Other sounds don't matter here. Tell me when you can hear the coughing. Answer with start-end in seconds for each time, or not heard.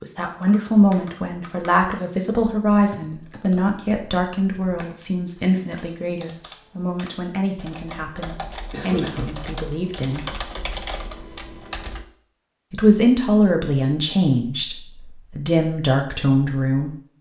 8.7-9.4.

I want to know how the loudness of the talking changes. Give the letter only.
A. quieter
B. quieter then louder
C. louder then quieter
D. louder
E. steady
B.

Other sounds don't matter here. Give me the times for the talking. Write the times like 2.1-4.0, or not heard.
0.0-10.2, 12.7-16.9.